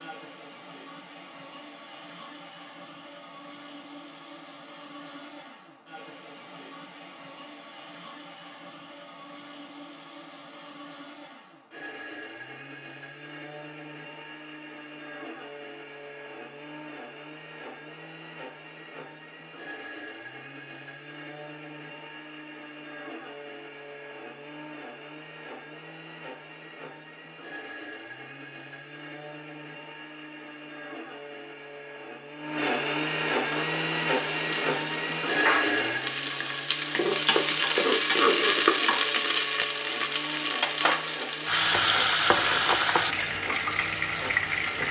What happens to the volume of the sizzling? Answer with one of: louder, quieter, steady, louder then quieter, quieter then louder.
louder.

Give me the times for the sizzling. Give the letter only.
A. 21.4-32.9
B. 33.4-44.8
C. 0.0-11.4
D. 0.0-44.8
B.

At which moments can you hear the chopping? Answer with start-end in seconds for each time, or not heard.
not heard.